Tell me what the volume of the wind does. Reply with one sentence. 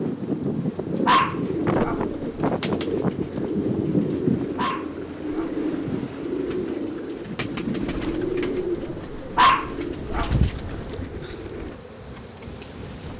The volume of the wind goes down.